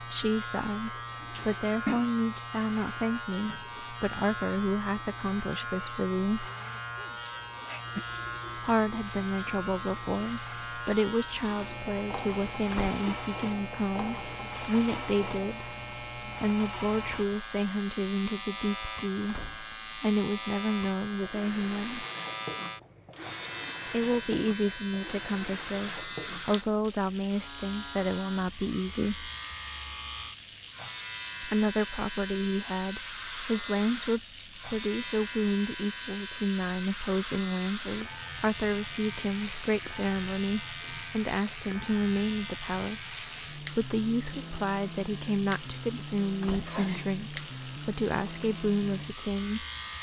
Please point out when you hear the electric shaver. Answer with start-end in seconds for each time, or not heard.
0.0-49.9.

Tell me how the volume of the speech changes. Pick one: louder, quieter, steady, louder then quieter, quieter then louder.
steady.